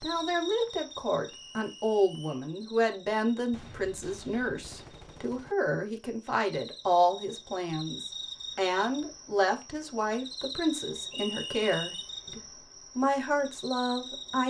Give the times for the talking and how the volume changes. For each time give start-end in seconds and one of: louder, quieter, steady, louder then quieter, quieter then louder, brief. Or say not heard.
0.0-14.4 steady.